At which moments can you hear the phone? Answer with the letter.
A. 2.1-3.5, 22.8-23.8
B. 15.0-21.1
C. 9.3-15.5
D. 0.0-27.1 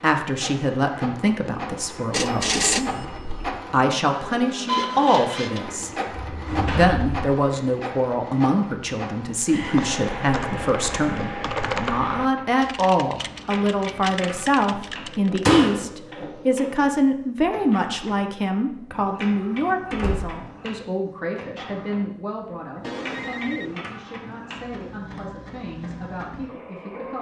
A.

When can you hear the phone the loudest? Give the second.
3 s.